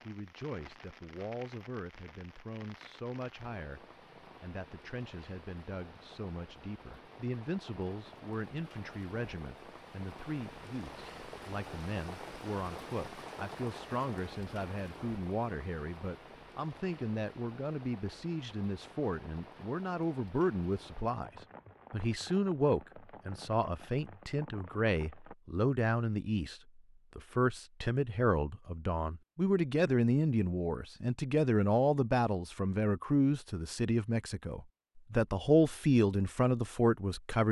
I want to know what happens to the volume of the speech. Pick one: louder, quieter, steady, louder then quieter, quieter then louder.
louder.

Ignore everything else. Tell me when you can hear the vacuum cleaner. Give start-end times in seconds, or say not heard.
not heard.